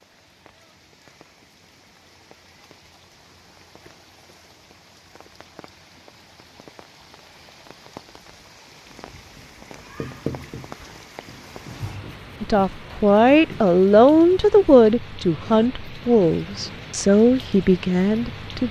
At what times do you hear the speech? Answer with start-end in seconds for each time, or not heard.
12.4-18.6.